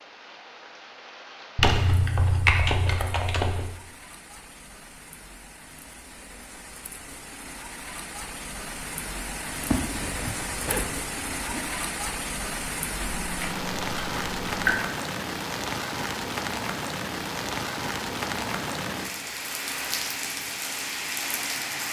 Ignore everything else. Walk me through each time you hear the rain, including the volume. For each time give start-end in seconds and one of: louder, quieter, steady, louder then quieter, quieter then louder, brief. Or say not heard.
0.0-21.8 louder.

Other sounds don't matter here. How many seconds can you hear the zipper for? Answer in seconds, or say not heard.
2 s.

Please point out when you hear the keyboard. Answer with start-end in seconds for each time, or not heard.
1.6-3.8, 13.0-14.8.